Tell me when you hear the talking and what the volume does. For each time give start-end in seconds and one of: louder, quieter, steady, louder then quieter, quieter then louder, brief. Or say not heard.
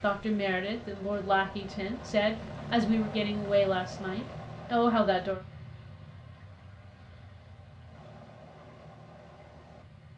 0.0-5.4 louder.